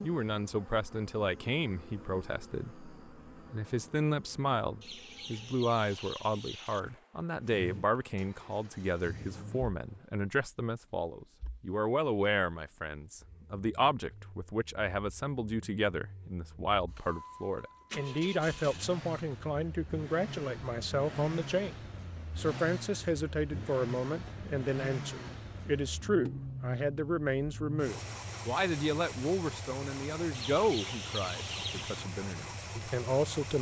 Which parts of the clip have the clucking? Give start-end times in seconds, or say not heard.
4.8-6.8, 30.3-32.0.